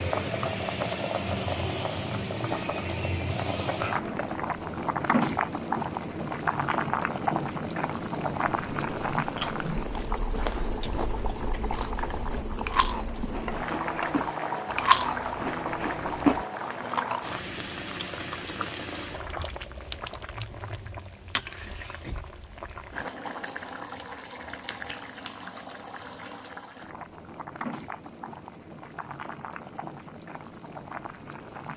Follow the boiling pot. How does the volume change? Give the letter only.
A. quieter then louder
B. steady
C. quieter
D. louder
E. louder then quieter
C.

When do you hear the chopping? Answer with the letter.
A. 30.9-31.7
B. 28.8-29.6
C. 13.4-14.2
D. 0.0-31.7
C.